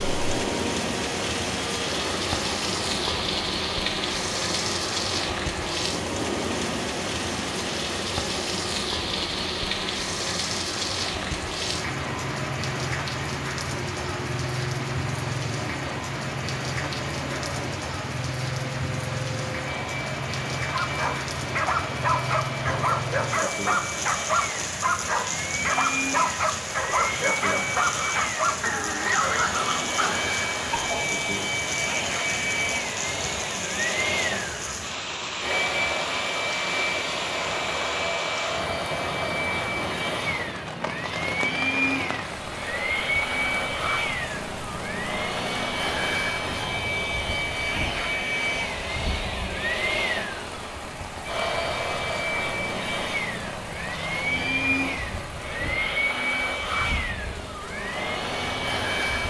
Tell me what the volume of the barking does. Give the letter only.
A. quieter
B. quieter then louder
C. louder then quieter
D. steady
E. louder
D.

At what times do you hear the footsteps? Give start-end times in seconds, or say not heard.
not heard.